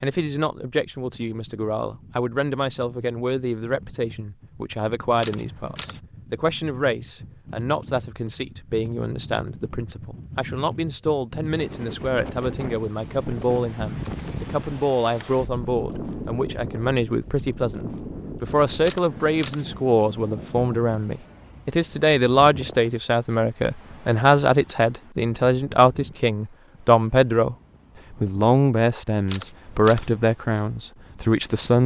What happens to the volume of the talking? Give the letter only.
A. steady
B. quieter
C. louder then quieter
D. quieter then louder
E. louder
E.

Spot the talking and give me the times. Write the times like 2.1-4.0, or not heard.
0.0-31.8.